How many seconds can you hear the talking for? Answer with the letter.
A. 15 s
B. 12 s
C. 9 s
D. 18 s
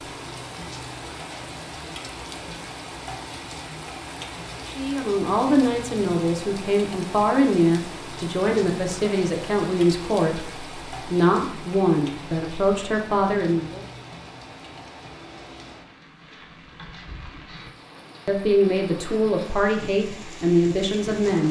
B.